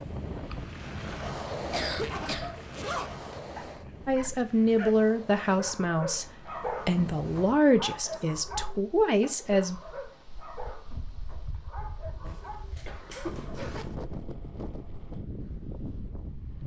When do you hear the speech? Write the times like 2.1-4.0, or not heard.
4.0-9.8.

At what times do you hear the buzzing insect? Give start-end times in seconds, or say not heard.
not heard.